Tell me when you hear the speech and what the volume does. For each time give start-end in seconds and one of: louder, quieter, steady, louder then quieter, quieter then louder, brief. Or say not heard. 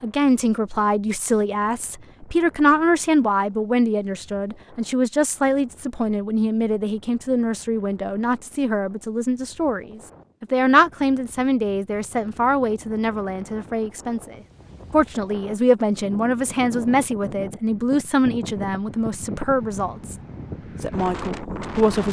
0.0-20.1 steady
20.8-22.0 brief.